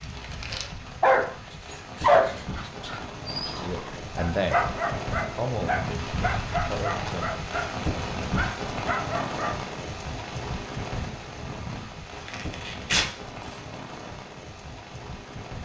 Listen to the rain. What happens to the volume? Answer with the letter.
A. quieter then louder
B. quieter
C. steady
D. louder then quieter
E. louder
D.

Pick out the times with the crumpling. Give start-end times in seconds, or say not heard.
0.0-0.7, 12.2-13.6.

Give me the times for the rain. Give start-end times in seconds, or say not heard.
0.0-15.6.